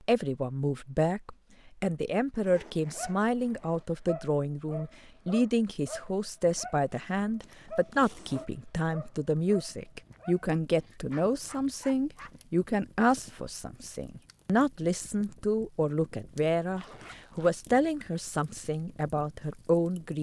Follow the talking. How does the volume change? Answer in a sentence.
The volume of the talking stays about the same.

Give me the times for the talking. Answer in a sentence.
You can hear the talking from 0.1 to 20.1 s.